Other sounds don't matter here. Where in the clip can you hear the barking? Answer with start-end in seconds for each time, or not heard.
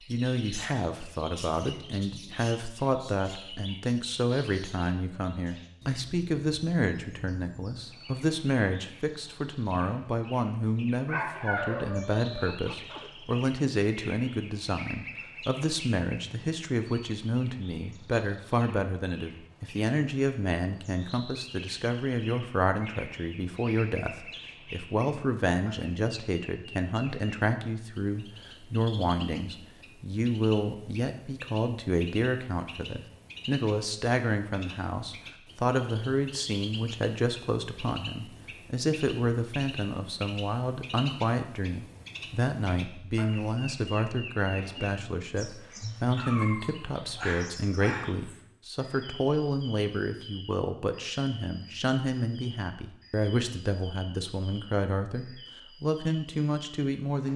11.1-13.1, 46.1-48.1.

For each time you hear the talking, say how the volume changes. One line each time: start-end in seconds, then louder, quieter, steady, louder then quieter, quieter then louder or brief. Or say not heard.
0.1-57.3 steady.